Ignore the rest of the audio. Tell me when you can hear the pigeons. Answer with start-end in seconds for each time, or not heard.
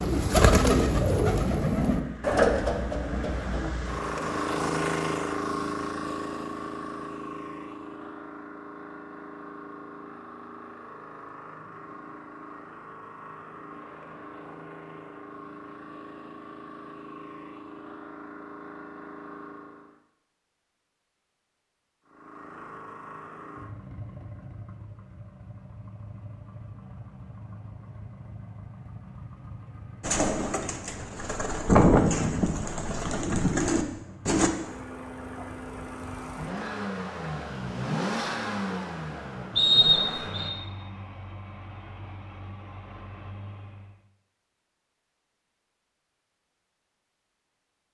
0.0-3.7, 30.0-34.5.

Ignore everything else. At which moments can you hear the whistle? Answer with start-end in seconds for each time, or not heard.
39.5-40.5.